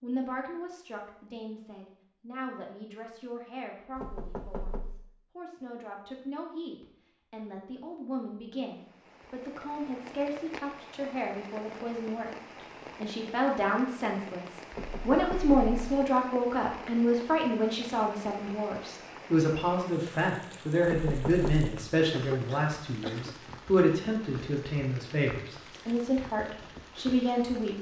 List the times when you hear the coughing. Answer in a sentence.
You can hear the coughing from 22.1 to 23.4 s.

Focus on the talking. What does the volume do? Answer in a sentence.
The loudness of the talking goes up.